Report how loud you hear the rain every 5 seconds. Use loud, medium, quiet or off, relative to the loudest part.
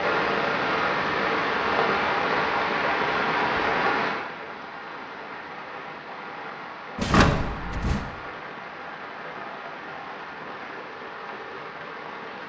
loud, quiet, quiet.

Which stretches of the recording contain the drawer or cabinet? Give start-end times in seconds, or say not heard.
7.0-8.0.